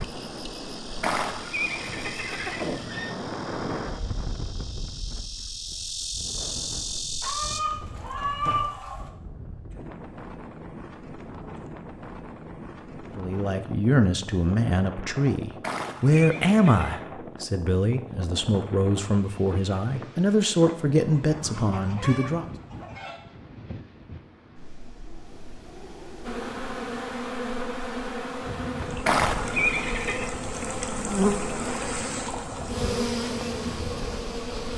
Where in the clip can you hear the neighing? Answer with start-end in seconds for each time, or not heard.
1.0-3.1, 15.6-17.0, 29.1-30.3.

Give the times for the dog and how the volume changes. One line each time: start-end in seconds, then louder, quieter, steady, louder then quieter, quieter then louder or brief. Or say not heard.
not heard.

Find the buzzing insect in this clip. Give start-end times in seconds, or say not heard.
0.0-7.6, 26.2-34.7.